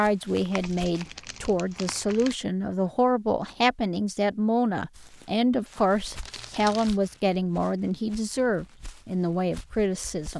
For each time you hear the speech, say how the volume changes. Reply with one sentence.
You can hear the speech from 0.0 to 10.3 s, at a steady volume.